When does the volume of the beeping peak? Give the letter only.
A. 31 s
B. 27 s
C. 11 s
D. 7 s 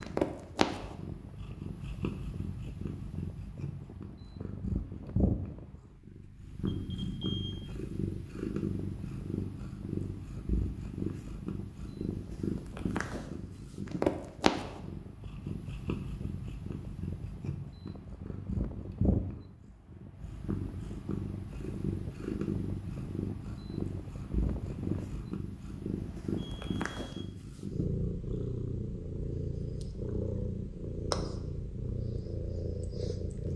D.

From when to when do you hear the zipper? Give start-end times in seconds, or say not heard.
not heard.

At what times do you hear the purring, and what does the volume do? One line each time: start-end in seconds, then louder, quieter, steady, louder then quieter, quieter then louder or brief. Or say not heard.
0.0-33.5 steady.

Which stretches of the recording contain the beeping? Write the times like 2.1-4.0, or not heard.
6.6-7.7, 26.4-27.2.